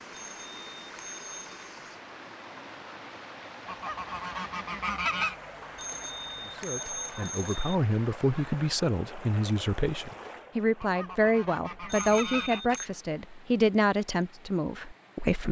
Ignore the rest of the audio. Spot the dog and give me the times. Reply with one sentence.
You can't hear the dog here.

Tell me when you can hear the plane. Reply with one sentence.
You can't hear the plane here.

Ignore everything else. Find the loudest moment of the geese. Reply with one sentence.
The loudest moment of the geese is at 5 seconds.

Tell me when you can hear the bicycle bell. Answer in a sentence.
You can hear the bicycle bell from 0.1 to 1.5 s, from 5.8 to 7.8 s and from 11.8 to 12.8 s.